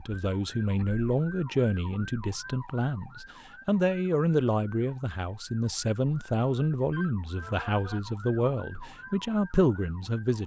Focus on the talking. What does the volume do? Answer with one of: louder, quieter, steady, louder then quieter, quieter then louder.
steady.